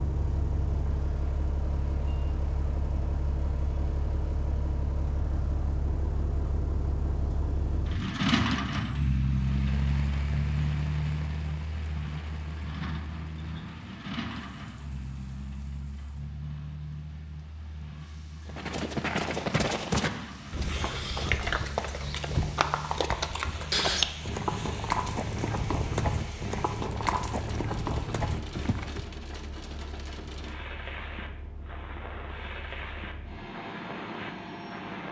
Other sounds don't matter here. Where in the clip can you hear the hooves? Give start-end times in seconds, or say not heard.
18.4-29.1.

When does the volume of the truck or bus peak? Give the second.
9 s.